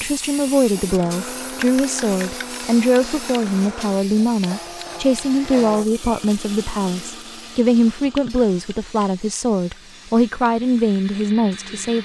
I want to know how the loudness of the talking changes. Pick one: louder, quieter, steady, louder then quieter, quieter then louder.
steady.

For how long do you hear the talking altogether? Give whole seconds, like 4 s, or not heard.
12 s.